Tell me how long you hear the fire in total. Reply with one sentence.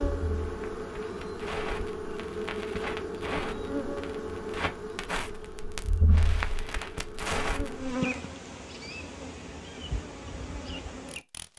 You can hear the fire for 8 seconds altogether.